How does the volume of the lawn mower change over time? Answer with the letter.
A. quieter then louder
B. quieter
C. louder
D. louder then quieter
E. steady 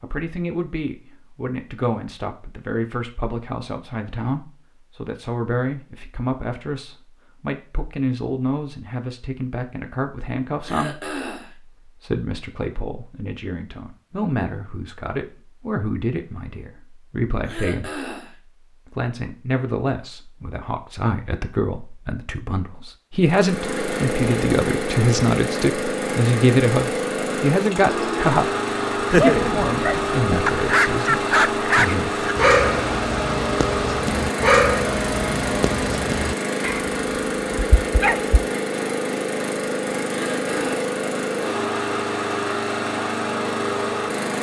E.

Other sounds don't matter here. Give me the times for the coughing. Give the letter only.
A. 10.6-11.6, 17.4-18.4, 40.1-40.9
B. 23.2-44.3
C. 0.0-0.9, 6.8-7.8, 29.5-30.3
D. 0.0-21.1
A.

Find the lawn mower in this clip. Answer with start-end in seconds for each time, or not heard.
23.2-44.3.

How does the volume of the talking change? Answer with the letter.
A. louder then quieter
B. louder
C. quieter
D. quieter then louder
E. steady
B.